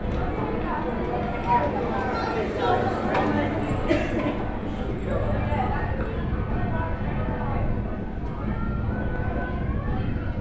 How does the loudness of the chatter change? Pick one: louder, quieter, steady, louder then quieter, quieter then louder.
quieter.